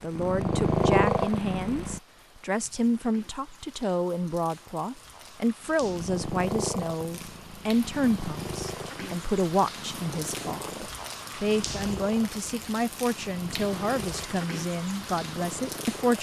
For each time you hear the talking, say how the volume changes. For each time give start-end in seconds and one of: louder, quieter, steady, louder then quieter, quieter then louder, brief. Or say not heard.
0.0-16.1 steady.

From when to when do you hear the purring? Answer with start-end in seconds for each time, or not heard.
0.1-2.0, 5.7-16.1.